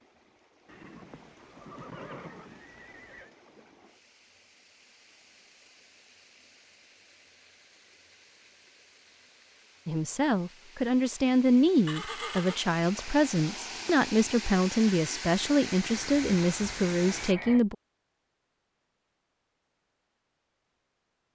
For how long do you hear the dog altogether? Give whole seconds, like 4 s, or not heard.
not heard.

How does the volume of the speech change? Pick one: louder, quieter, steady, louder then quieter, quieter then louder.
steady.